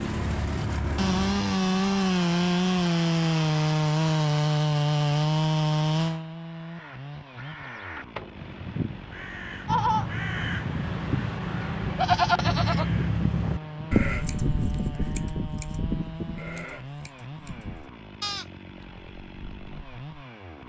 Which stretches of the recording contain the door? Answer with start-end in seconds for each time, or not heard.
7.6-8.4.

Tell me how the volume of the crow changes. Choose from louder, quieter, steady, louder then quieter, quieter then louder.
louder then quieter.